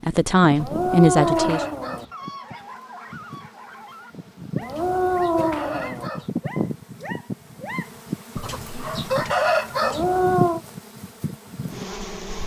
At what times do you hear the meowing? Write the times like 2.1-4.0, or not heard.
0.6-2.0, 4.6-6.1, 9.8-10.6.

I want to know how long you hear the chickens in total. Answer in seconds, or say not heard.
5 s.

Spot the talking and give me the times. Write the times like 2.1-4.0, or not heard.
0.0-1.6.